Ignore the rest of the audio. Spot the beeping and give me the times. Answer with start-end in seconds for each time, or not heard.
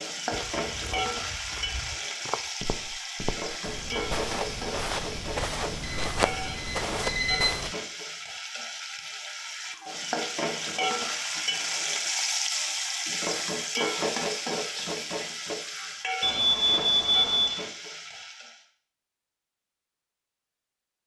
5.8-7.6, 16.2-17.6.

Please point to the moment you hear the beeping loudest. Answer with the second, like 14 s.
17 s.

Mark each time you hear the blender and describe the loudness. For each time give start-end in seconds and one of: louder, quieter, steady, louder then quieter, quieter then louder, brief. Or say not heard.
not heard.